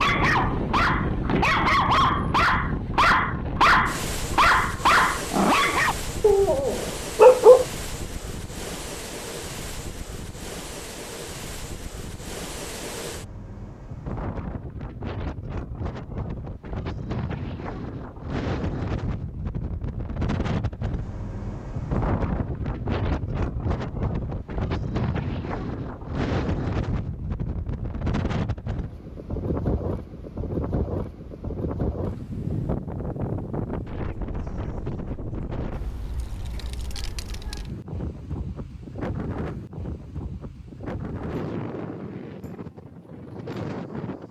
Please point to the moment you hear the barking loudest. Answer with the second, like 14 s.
7 s.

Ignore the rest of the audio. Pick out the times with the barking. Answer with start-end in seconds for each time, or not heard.
0.0-7.7.